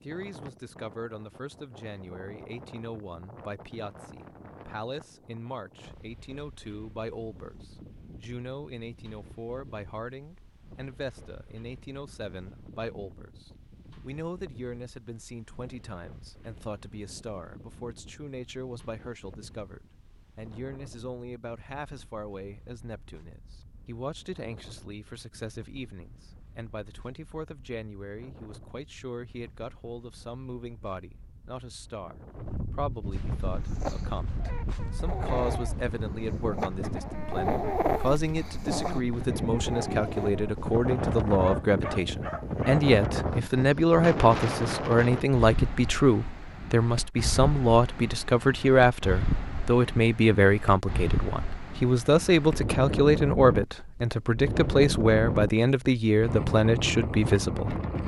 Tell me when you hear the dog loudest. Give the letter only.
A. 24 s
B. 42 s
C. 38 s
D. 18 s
C.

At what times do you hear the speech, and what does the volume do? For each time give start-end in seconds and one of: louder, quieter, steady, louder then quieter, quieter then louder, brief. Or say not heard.
0.0-57.8 louder.